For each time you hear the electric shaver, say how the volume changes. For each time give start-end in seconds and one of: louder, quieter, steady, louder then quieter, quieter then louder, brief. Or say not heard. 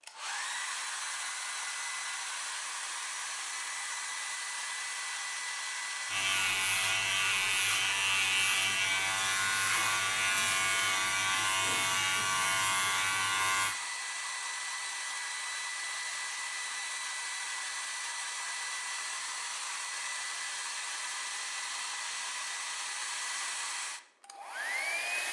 6.0-13.8 steady.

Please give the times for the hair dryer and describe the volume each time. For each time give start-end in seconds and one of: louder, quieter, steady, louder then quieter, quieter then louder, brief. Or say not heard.
0.0-25.2 steady.